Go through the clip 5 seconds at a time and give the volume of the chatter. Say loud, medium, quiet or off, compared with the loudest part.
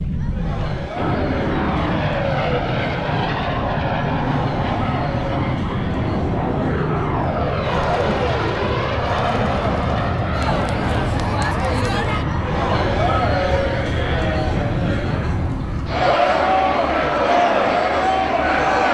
medium, medium, loud, loud.